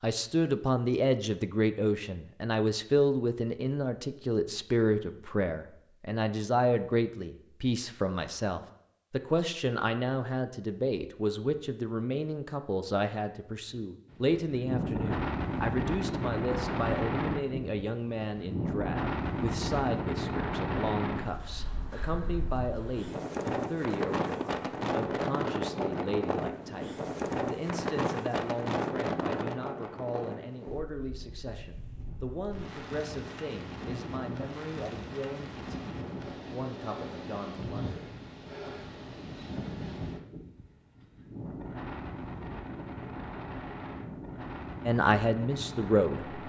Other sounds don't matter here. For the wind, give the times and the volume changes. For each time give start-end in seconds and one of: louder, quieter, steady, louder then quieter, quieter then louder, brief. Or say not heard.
14.1-46.4 quieter.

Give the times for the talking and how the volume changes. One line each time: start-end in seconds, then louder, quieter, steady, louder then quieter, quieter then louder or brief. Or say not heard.
0.0-38.0 quieter
44.9-46.4 brief.